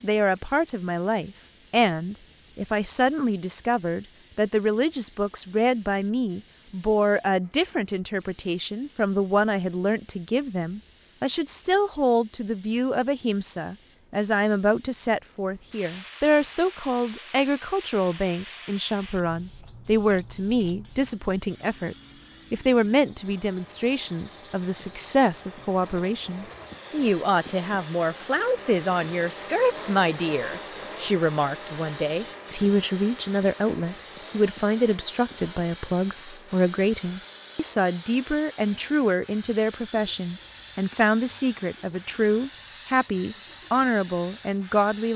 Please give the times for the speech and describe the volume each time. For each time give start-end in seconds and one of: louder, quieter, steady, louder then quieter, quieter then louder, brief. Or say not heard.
0.0-45.1 steady.